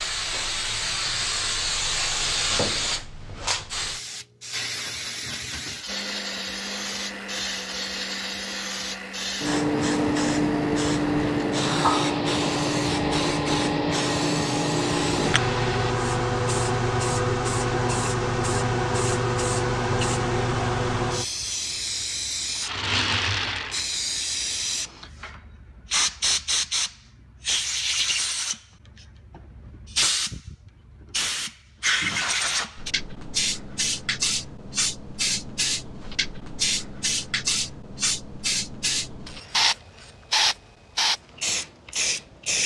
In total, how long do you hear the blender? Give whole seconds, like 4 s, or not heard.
10 s.